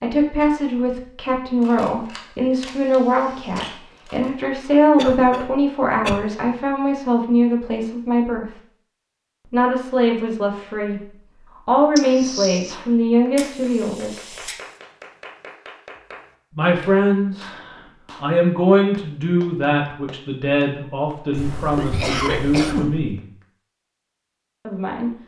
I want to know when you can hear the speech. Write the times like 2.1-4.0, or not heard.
0.0-8.5, 9.5-14.3, 16.6-23.2, 24.6-25.1.